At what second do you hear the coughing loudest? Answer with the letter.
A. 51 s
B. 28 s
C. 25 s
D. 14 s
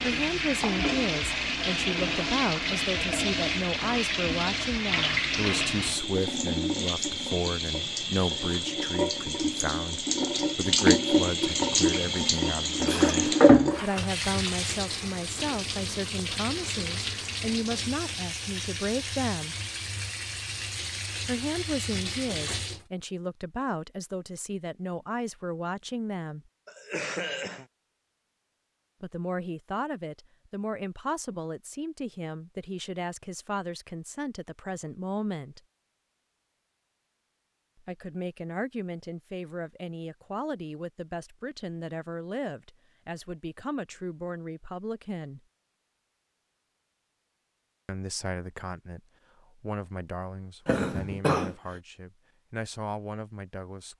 A.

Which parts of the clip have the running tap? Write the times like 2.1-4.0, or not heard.
0.0-22.9.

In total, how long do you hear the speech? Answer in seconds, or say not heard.
45 s.